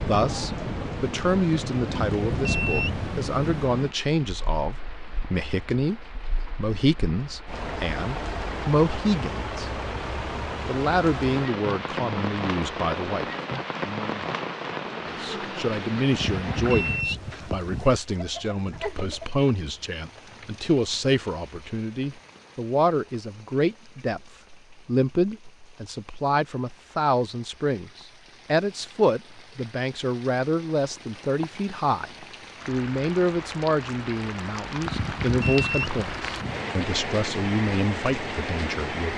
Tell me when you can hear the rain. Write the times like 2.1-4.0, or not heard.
0.0-39.1.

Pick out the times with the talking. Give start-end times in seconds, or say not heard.
0.0-9.8, 10.7-13.2, 15.1-39.1.